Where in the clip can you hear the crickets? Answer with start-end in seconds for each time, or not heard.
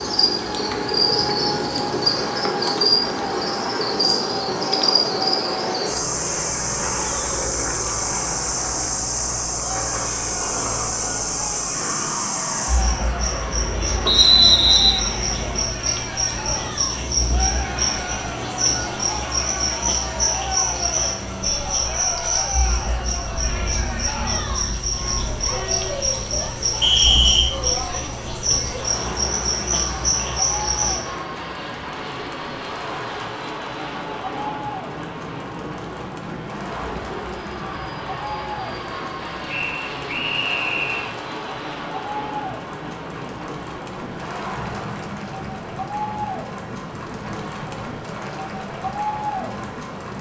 0.0-31.1.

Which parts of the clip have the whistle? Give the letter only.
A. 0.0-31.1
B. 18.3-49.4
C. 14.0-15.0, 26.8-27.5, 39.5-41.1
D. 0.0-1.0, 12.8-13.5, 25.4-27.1
C.